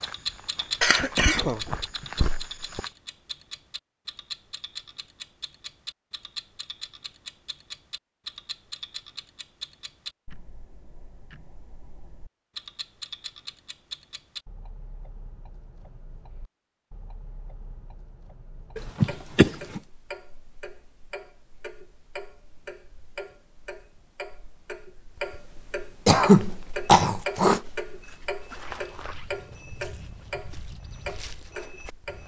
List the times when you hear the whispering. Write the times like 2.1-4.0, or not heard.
not heard.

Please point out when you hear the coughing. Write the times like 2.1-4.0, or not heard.
0.8-2.8, 18.8-19.8, 26.1-27.6.